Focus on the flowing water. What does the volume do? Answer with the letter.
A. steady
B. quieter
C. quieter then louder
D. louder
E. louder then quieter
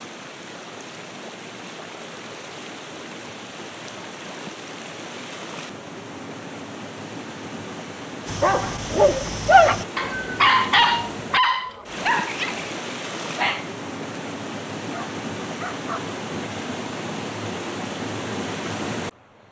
D.